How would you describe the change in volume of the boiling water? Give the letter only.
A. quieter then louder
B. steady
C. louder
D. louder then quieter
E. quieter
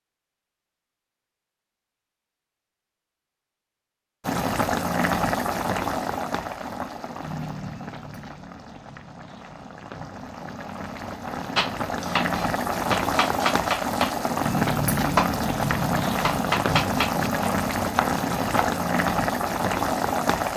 A.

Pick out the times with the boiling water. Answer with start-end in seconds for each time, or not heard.
4.2-20.5.